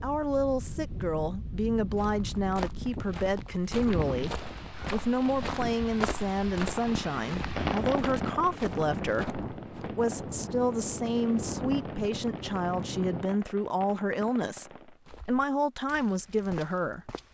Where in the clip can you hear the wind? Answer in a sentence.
You can hear the wind from 0.0 to 13.2 s.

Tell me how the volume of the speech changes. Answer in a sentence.
The loudness of the speech stays about the same.